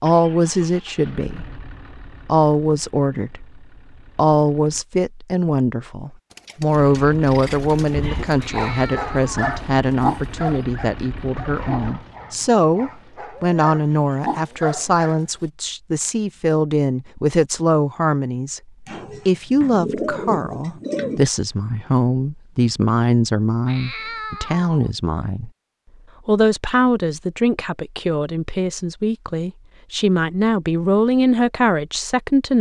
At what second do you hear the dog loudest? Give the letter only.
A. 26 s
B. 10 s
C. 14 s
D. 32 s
B.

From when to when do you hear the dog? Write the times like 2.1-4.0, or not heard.
7.9-15.2.